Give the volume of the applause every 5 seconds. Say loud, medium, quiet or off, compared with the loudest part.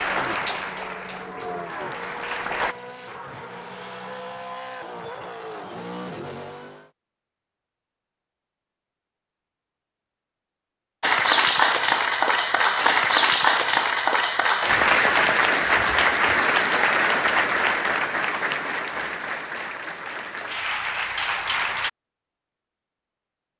medium, off, loud, loud, medium.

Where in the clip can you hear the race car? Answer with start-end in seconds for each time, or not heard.
0.0-6.9.